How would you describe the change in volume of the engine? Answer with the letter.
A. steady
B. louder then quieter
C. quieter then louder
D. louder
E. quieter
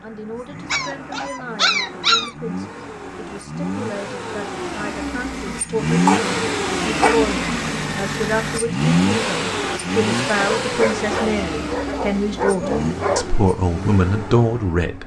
B.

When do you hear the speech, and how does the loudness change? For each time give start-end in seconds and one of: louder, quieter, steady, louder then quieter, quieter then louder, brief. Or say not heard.
0.0-15.0 louder.